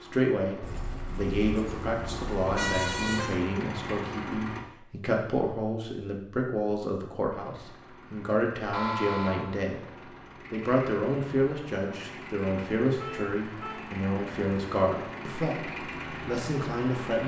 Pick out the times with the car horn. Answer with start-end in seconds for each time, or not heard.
0.6-3.4, 8.7-9.6, 12.9-13.9.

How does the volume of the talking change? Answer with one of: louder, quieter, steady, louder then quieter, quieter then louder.
steady.